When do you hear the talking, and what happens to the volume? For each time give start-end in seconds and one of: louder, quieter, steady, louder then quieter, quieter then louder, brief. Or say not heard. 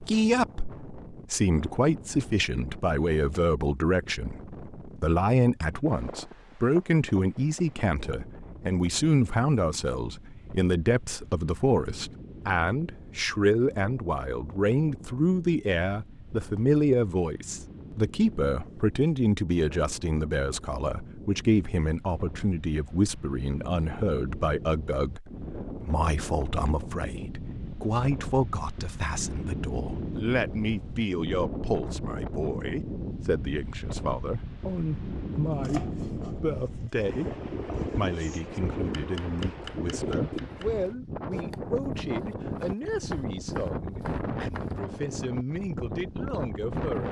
0.0-47.0 quieter.